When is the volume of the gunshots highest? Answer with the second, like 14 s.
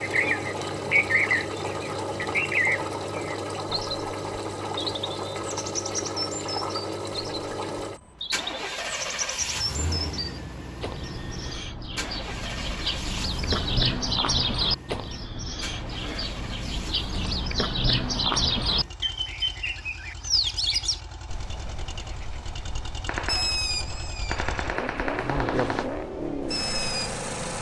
25 s.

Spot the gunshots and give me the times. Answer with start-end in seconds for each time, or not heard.
23.1-25.9.